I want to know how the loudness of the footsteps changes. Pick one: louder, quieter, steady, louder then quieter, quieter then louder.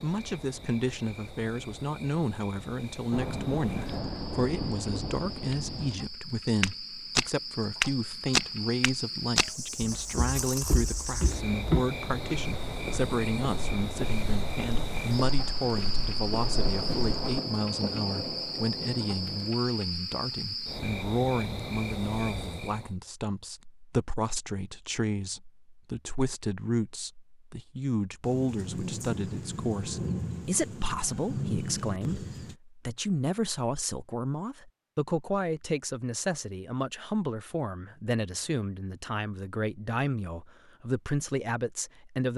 quieter.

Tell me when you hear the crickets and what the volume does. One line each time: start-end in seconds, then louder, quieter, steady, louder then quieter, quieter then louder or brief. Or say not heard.
0.0-22.9 louder.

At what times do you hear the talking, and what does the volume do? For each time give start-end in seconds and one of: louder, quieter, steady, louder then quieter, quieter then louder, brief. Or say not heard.
0.0-42.3 steady.